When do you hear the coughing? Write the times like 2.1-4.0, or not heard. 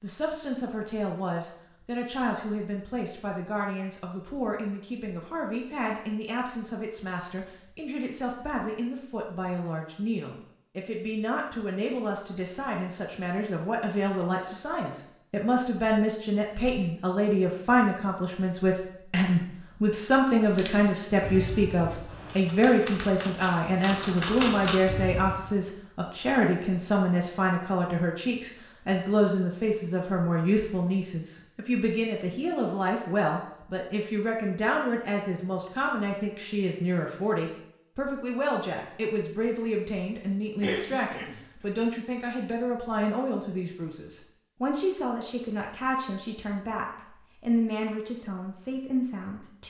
40.6-41.4.